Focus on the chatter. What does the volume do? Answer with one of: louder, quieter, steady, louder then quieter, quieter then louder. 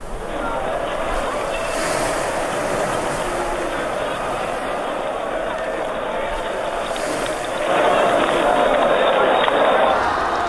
louder.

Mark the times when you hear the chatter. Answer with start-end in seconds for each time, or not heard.
0.0-10.4.